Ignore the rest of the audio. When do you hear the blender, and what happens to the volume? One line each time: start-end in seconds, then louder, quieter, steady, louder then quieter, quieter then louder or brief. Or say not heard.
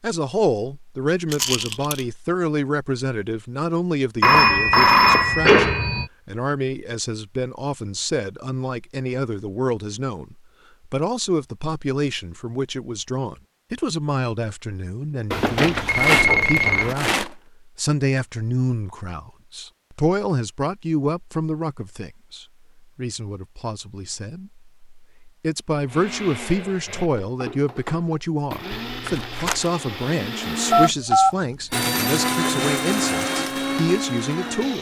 25.9-34.7 louder.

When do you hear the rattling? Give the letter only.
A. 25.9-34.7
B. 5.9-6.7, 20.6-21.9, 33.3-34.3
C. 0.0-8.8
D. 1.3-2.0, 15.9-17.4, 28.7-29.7
D.